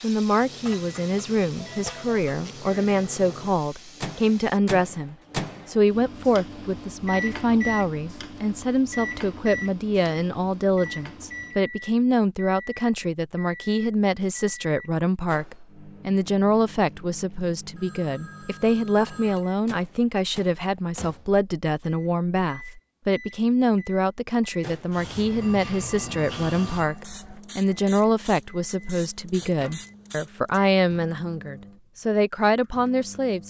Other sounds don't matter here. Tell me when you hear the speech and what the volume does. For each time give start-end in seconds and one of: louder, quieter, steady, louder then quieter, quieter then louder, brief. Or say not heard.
0.0-33.4 steady.